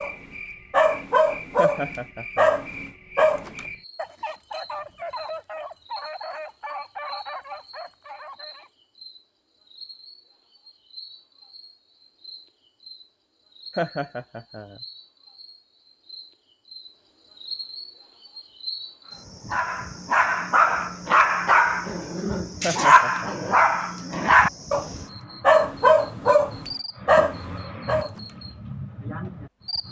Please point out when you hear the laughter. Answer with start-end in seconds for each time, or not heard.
1.6-2.6, 13.8-14.8, 22.6-23.4.